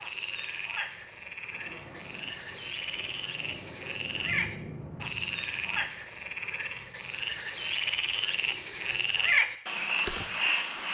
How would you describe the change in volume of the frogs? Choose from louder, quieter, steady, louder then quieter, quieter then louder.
louder.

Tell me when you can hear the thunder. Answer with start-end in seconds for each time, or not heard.
1.5-5.8.